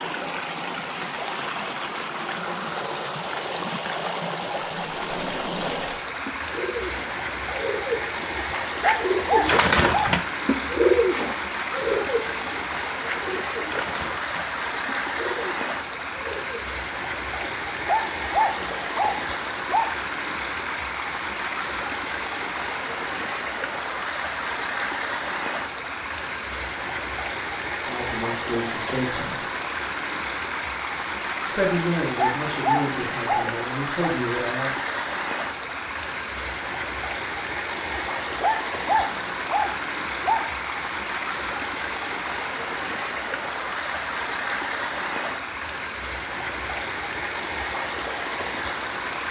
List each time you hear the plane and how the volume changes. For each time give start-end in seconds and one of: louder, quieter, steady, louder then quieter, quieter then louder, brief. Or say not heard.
not heard.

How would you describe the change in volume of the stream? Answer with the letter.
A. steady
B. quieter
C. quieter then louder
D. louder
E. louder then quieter
A.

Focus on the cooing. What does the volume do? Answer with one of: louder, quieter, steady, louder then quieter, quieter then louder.
louder then quieter.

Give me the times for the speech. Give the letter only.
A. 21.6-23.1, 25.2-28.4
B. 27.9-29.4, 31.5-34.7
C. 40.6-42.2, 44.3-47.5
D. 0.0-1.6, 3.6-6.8
B.